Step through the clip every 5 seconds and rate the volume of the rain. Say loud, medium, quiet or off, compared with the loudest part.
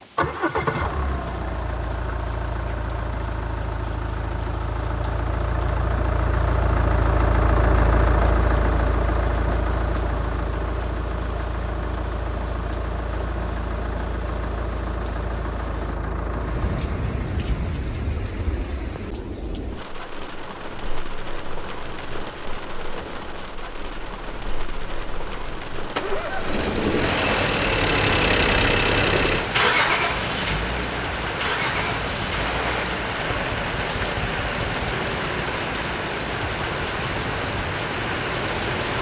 quiet, quiet, quiet, medium, medium, loud, loud, loud.